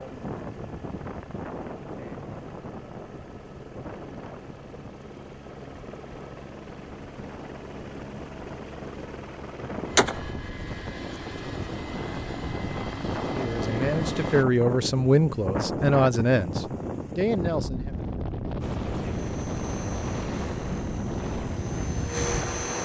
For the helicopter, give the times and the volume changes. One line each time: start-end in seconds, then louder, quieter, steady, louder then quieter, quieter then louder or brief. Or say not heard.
0.0-14.4 louder
18.6-22.7 louder.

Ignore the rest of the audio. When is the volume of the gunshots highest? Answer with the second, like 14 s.
10 s.